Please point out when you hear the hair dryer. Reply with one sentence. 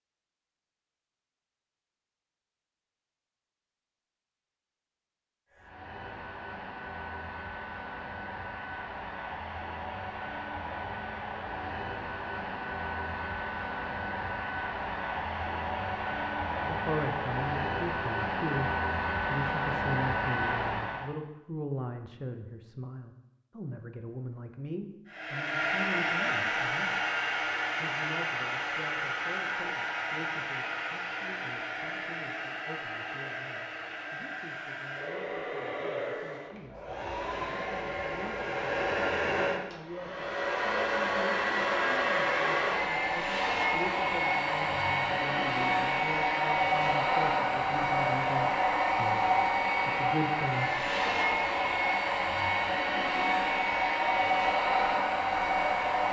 The hair dryer can be heard from 5.5 to 21.1 s and from 25.1 to 56.0 s.